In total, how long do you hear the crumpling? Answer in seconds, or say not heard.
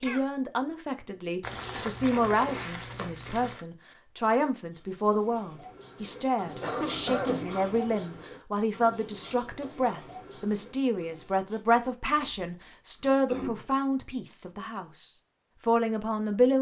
2 s.